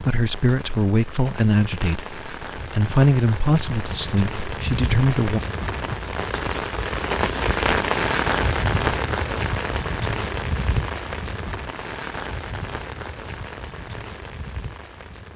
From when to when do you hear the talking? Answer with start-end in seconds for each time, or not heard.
0.0-5.4.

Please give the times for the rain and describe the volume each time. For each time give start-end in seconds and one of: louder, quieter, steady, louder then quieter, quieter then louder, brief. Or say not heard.
0.0-15.3 louder then quieter.